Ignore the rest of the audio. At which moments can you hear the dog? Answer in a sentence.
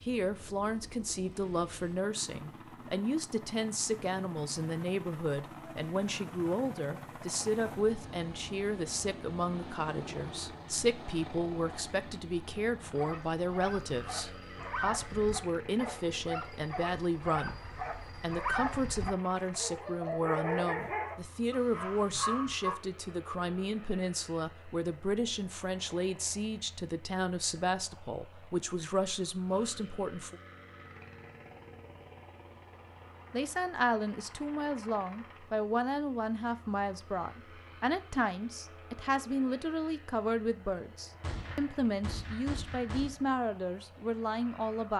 The dog can be heard from 12.9 to 22.8 s.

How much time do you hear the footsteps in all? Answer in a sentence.
You can't hear the footsteps here.